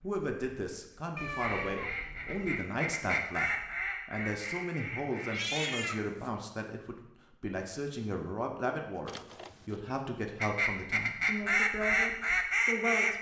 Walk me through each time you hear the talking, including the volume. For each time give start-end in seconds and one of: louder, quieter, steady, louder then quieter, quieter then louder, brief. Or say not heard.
0.0-13.1 steady.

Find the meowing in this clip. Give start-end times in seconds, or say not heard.
1.1-2.5, 5.3-6.3, 9.1-10.0.